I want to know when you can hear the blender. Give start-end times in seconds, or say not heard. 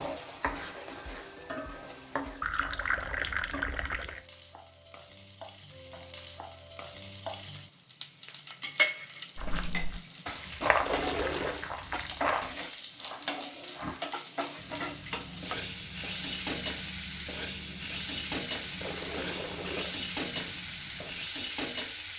not heard.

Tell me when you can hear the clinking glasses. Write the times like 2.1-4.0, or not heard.
not heard.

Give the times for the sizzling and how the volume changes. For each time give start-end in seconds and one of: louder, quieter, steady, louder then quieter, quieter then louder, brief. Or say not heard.
0.0-22.1 louder.